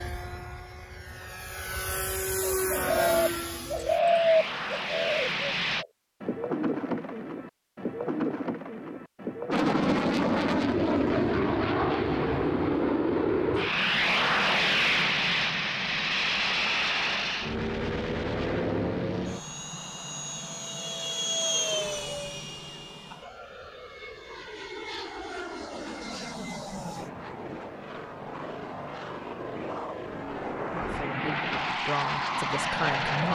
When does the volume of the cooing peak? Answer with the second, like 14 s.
4 s.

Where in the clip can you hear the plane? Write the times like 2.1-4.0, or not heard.
0.0-5.8, 9.5-33.2.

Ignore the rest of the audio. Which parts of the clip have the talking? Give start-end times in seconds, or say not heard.
30.8-33.2.